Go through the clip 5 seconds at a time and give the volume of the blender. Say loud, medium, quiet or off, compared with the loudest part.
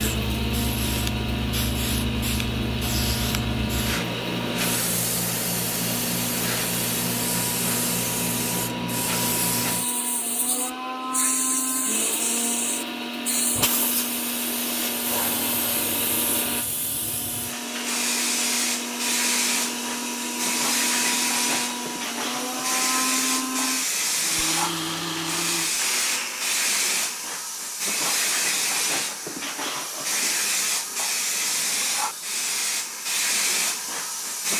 loud, loud, loud, loud, loud, loud, off.